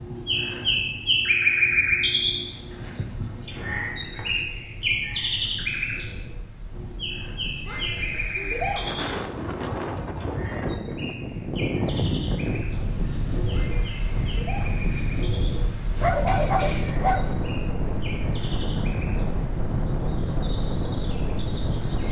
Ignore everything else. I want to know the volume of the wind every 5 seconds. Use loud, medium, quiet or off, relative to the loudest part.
quiet, medium, loud, loud, loud.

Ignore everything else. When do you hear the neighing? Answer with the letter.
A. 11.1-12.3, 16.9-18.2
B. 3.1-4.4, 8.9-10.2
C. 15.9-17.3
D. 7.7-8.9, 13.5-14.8
D.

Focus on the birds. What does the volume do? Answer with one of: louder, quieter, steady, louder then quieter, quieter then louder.
quieter.